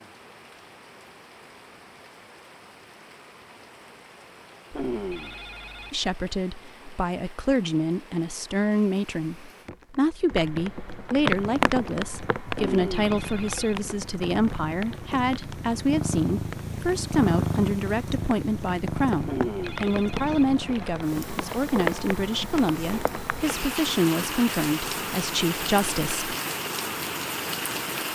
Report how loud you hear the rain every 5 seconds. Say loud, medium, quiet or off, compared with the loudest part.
quiet, quiet, loud, medium, loud, loud.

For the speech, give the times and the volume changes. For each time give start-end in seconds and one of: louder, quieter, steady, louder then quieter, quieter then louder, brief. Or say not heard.
5.9-26.4 steady.